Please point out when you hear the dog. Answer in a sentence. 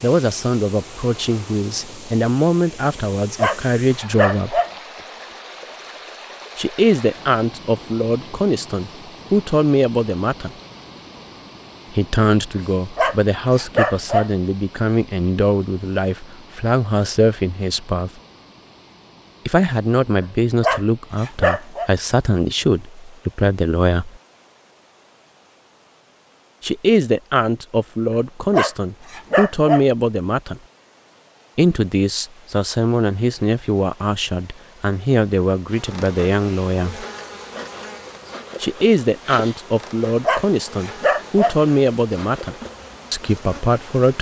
You can hear the dog from 3.4 to 4.7 s, from 12.9 to 14.3 s, from 20.6 to 21.9 s, from 28.5 to 29.9 s and from 40.2 to 41.5 s.